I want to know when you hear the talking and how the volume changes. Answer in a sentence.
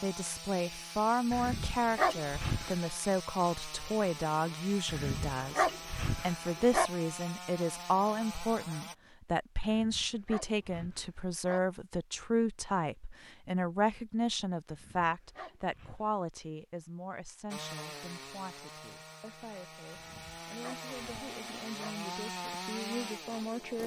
You can hear the talking from 0.0 to 23.8 s, getting quieter.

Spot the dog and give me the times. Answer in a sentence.
The dog can be heard from 1.3 to 2.8 s, from 4.8 to 6.9 s, from 9.6 to 11.6 s, from 14.7 to 16.1 s and from 19.9 to 21.9 s.